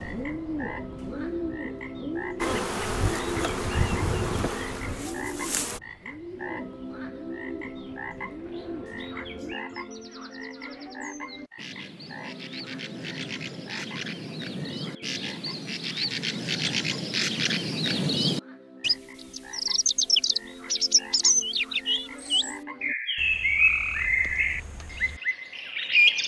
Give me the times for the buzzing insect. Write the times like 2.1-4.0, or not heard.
2.4-5.8.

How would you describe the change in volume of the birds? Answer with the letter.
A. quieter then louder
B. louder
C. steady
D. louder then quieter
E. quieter
A.